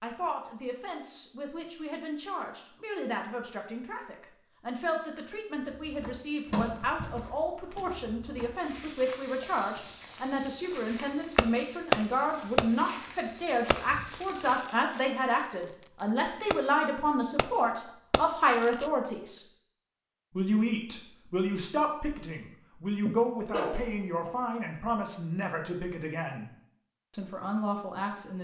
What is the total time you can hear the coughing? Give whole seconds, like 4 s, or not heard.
2 s.